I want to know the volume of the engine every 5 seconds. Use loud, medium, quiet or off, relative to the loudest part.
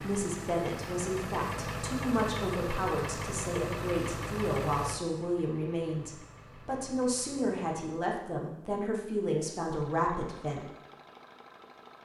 loud, quiet, quiet.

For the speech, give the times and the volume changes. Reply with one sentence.
The speech can be heard from 0.0 to 10.7 s, at a steady volume.